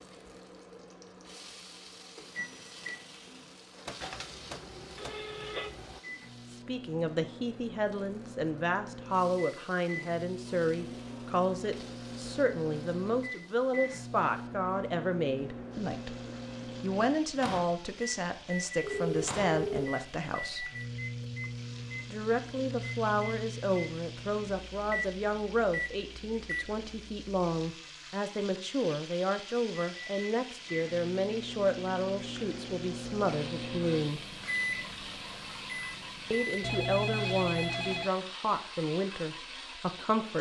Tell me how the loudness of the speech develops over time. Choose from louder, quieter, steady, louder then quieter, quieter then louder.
steady.